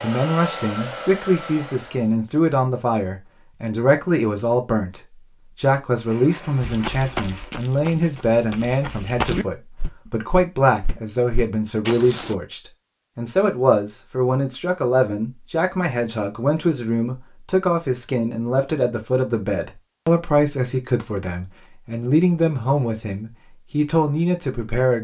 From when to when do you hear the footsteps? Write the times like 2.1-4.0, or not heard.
6.6-12.3.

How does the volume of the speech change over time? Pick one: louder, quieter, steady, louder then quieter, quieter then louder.
steady.